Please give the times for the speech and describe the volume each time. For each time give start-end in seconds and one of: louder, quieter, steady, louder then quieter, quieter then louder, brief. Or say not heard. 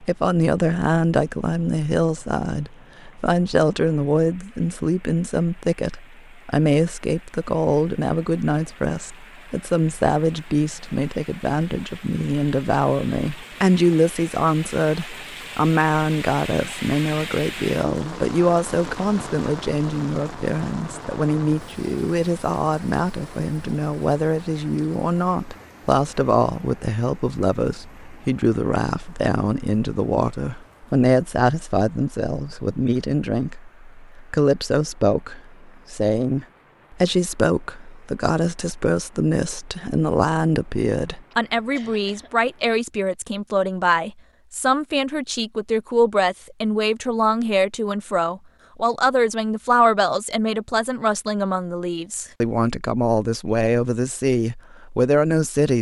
0.0-55.7 steady.